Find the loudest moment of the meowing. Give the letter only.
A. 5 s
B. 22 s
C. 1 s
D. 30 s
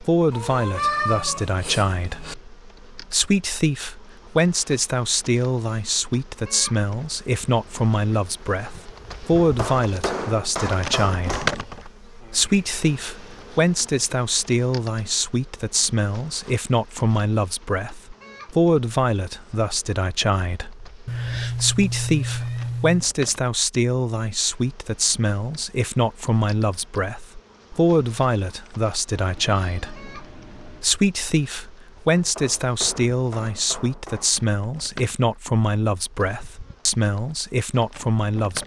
C.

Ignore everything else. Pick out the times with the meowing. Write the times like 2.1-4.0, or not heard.
0.3-2.4, 21.1-23.1, 29.1-30.9.